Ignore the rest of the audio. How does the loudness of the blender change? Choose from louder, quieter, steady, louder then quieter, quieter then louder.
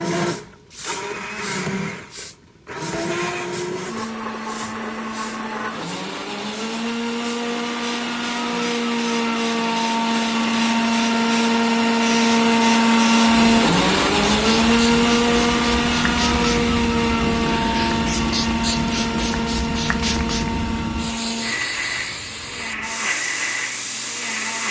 louder then quieter.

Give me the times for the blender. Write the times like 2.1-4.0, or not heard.
0.0-24.6.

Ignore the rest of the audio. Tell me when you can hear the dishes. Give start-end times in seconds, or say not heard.
not heard.